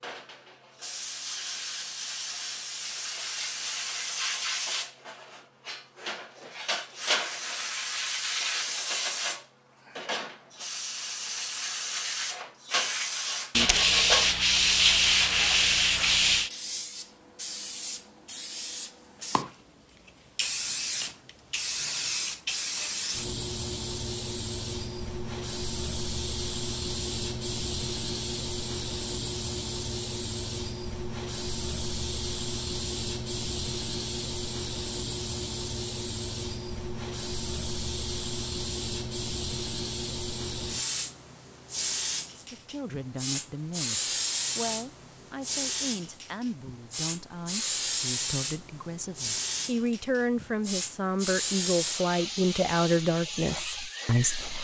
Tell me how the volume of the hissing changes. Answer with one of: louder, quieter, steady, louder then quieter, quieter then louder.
steady.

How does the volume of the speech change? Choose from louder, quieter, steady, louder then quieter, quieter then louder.
louder.